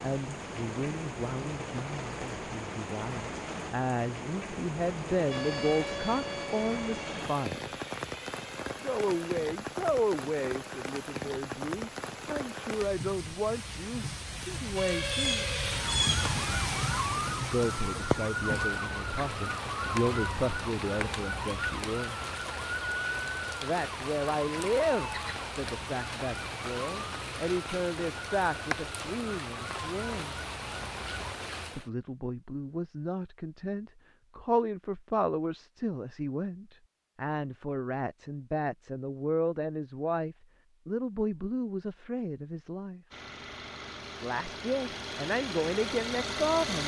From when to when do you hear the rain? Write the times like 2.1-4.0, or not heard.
0.0-31.9.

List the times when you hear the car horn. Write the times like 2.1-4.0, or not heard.
not heard.